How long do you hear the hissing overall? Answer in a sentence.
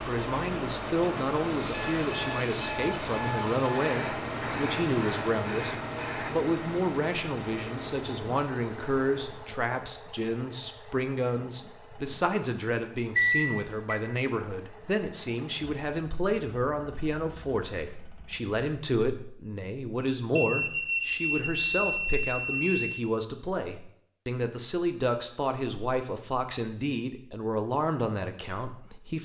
The hissing can be heard for 8 seconds in total.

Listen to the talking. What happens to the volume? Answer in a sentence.
The volume of the talking stays about the same.